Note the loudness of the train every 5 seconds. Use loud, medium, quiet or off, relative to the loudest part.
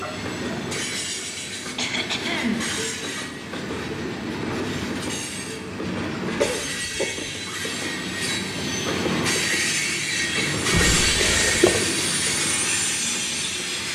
medium, loud, loud.